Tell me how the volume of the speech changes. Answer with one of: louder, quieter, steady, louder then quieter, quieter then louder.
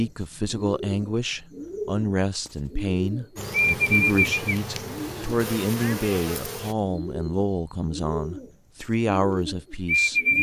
steady.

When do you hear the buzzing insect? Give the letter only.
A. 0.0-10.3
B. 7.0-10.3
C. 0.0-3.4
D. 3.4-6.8
D.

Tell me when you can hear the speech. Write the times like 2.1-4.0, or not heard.
0.0-10.3.